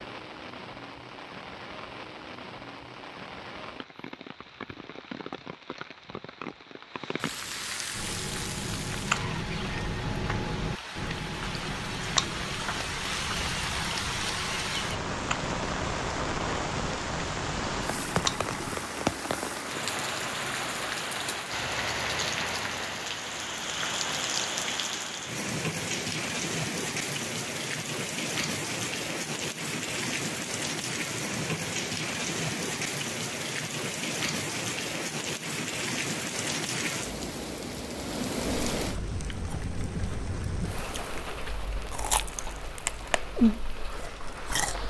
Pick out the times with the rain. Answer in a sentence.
The rain can be heard from 0.0 to 44.8 s.